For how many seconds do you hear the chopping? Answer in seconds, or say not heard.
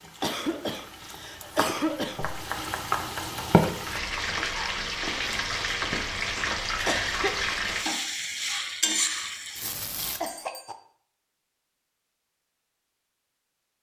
3 s.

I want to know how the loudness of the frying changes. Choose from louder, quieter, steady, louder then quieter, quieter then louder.
louder.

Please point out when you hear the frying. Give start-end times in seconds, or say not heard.
0.0-10.2.